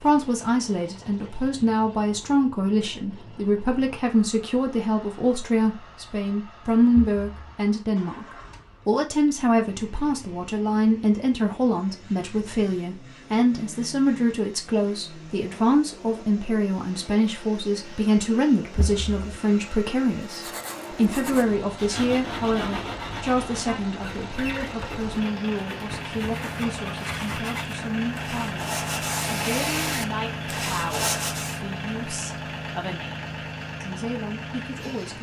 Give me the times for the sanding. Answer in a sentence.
The sanding can be heard from 20.3 to 31.6 s.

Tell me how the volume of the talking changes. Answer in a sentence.
The volume of the talking goes down.